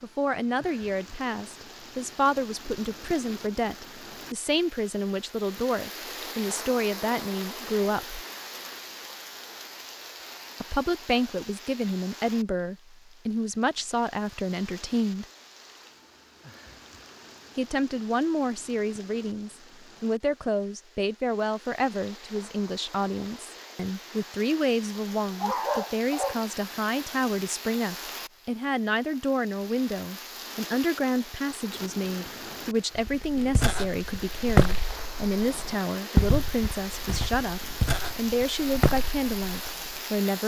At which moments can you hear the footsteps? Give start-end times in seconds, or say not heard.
33.0-40.0.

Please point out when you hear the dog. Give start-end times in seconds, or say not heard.
25.1-26.4.